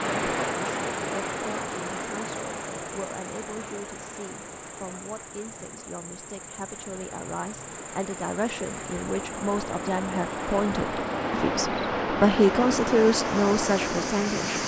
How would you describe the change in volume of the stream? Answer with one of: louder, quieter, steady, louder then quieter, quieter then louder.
quieter then louder.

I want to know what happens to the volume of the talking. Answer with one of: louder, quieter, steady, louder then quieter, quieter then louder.
louder.